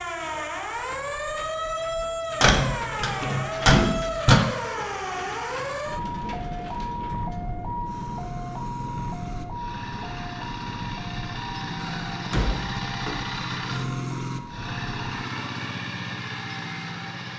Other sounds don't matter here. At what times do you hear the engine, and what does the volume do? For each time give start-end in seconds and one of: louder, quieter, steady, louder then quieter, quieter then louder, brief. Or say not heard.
0.0-17.3 louder.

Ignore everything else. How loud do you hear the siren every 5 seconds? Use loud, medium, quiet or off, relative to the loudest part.
loud, loud, medium, medium.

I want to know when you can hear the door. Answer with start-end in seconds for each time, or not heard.
2.4-4.4, 11.8-13.2.